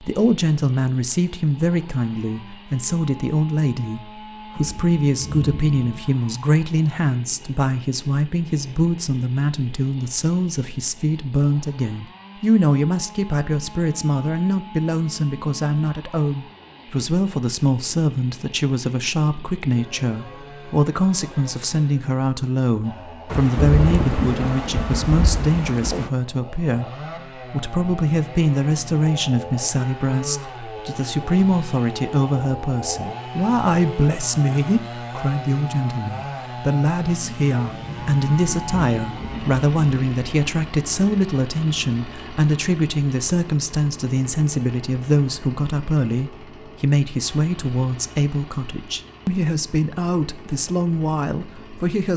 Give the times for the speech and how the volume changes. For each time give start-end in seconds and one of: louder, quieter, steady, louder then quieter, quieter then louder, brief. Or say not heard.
0.0-52.1 steady.